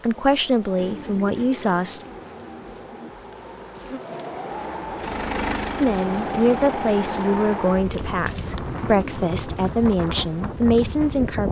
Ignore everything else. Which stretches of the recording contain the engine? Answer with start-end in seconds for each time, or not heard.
5.0-7.6.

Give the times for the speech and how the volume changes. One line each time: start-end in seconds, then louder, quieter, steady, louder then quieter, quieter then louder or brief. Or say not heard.
0.0-2.0 brief
5.8-11.4 steady.